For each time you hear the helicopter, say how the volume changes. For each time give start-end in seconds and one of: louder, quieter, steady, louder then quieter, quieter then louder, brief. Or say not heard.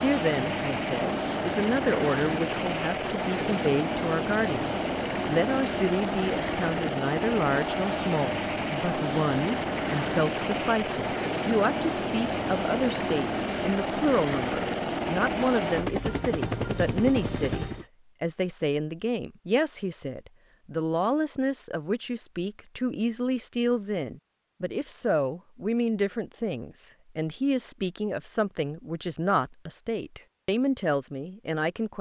0.0-17.9 steady.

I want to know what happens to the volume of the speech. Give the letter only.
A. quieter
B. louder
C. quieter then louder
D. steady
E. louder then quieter
D.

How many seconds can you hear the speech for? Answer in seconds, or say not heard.
32 s.